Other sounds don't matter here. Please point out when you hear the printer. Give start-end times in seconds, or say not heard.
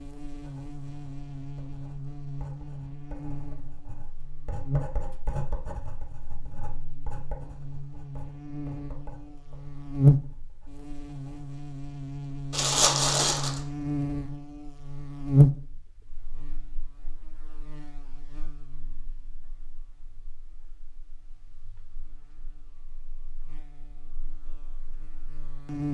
not heard.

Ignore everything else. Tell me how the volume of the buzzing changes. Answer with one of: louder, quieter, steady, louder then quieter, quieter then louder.
louder then quieter.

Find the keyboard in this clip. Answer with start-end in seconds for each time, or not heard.
not heard.